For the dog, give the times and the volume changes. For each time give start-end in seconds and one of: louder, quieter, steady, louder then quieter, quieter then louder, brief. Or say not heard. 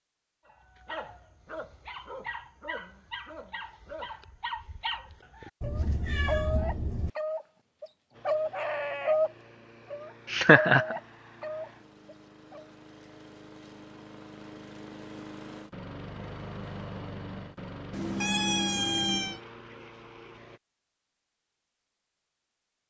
0.5-9.3 louder
9.9-12.7 brief.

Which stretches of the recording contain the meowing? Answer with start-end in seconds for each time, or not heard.
5.6-7.1, 17.9-19.4.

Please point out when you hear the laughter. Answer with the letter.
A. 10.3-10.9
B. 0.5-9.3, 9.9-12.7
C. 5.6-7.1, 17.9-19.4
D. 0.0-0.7
A.